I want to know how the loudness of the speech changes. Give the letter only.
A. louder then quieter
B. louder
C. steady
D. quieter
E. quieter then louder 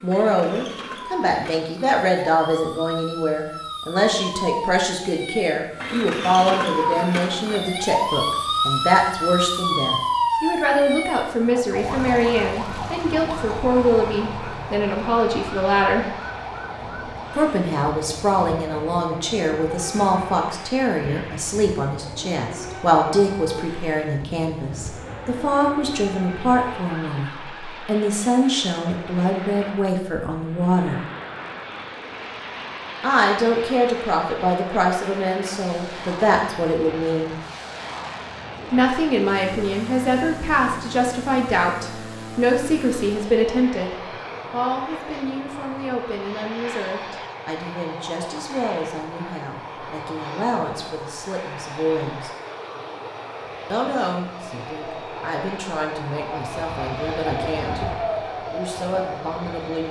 D.